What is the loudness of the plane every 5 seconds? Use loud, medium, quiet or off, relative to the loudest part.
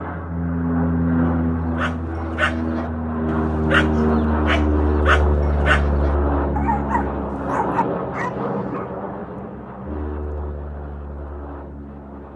loud, loud, quiet.